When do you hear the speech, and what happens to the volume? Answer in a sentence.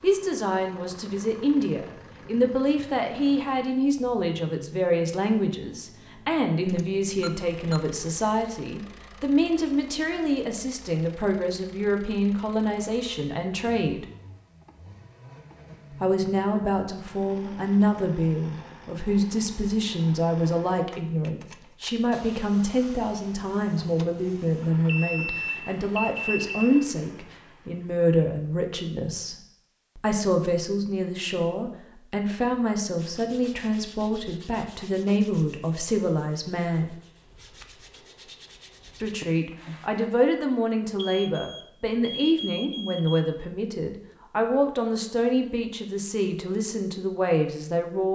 The speech can be heard from 0.0 to 14.1 s, at a steady volume; from 15.9 to 29.4 s, at a steady volume; from 29.9 to 37.0 s, at a steady volume; and from 39.0 to 48.0 s, at a steady volume.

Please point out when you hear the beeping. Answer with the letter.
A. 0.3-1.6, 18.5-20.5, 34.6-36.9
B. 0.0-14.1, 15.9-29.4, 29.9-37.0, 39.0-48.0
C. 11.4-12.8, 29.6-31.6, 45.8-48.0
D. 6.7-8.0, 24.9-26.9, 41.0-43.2
D.